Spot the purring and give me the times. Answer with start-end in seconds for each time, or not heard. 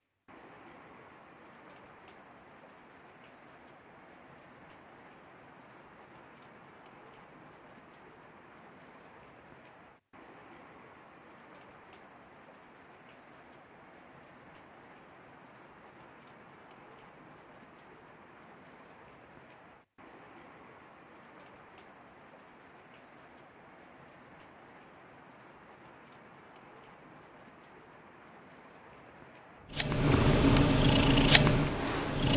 29.7-32.3.